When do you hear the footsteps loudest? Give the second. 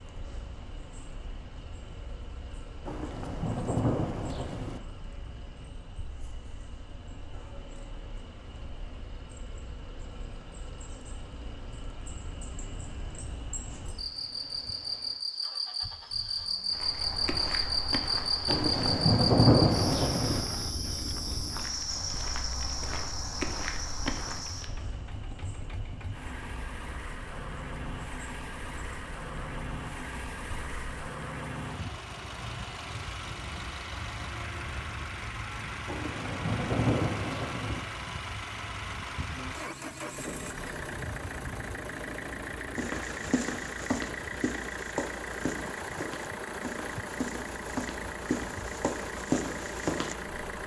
49 s.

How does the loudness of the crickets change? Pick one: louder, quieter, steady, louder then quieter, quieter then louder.
louder then quieter.